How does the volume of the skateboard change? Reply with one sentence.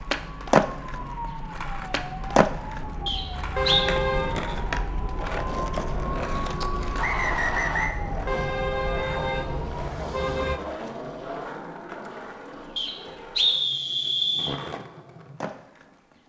The loudness of the skateboard goes down.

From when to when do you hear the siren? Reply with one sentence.
The siren can be heard from 0.0 to 9.9 s.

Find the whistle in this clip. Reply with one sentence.
You can hear the whistle from 3.0 to 3.9 s, from 7.0 to 8.0 s and from 12.8 to 14.6 s.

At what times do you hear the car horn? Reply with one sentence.
You can hear the car horn from 3.5 to 4.4 s and from 8.2 to 10.6 s.